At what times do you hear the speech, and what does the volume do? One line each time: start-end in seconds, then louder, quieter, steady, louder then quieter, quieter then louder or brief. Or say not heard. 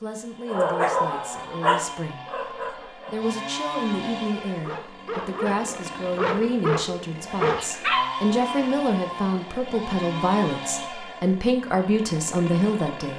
0.0-13.1 louder.